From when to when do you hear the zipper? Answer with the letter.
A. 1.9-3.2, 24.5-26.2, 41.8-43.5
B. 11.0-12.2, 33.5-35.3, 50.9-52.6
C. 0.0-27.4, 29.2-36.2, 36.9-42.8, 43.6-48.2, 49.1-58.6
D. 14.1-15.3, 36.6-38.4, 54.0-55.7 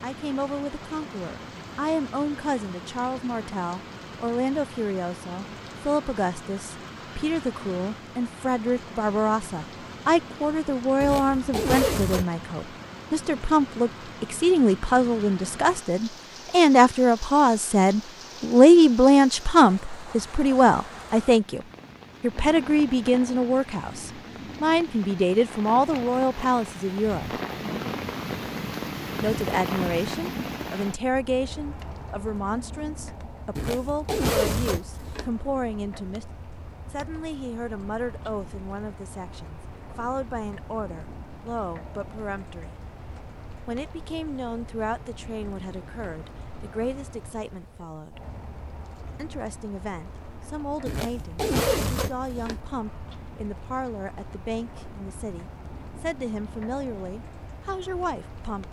B.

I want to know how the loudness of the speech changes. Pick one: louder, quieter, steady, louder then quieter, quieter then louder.
louder then quieter.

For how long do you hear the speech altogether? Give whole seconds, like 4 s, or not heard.
54 s.